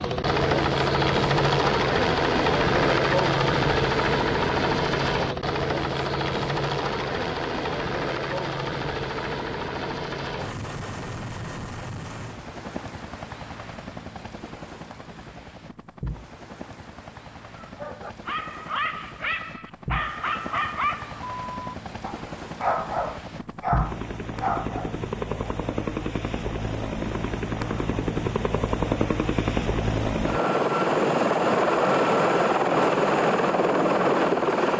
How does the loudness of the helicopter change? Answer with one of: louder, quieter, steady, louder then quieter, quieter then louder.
quieter then louder.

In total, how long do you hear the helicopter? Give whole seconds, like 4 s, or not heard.
35 s.